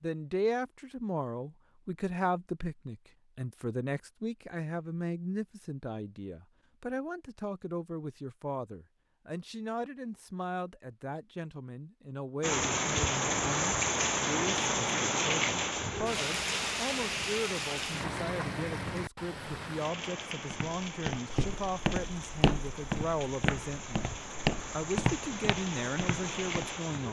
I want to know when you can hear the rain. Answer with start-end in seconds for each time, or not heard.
12.4-27.0.